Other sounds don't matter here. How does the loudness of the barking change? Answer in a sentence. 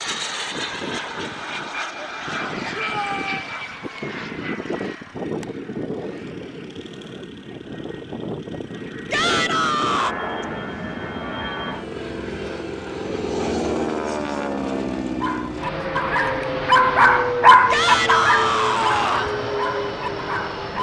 The volume of the barking goes up, then down.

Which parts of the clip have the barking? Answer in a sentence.
You can hear the barking from 15.2 to 20.7 s.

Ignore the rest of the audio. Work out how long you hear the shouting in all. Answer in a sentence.
You can hear the shouting for 3 seconds altogether.